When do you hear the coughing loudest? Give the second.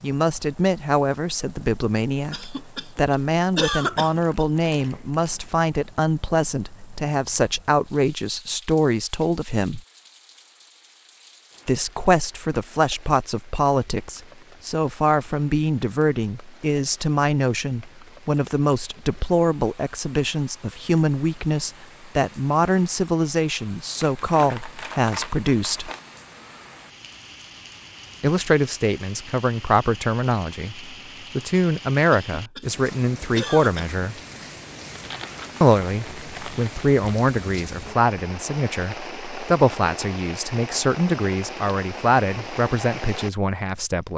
4 s.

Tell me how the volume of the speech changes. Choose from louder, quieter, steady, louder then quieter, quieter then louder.
steady.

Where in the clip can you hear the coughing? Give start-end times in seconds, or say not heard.
2.3-4.5, 32.4-33.9.